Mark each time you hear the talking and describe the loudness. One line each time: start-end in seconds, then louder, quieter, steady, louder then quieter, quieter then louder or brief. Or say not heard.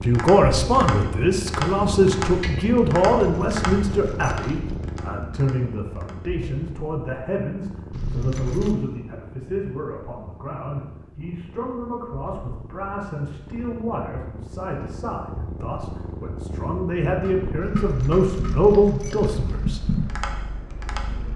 0.0-19.8 quieter then louder.